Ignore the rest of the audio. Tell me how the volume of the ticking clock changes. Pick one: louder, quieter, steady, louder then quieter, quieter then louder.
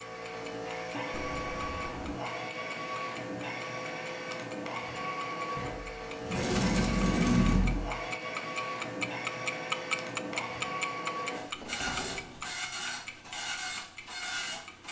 louder then quieter.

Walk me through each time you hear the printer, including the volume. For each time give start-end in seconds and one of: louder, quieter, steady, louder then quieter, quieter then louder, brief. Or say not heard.
0.0-14.8 steady.